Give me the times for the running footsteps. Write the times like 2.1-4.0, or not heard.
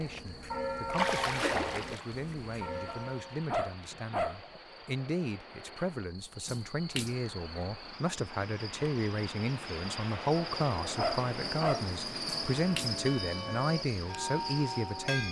not heard.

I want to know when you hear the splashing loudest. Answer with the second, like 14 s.
1 s.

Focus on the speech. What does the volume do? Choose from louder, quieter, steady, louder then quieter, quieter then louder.
louder.